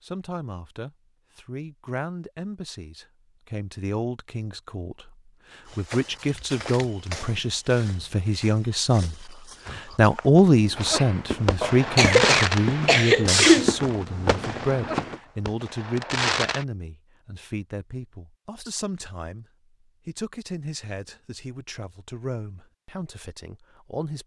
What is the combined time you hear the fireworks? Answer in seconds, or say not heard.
6 s.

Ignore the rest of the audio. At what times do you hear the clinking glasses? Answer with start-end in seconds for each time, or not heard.
not heard.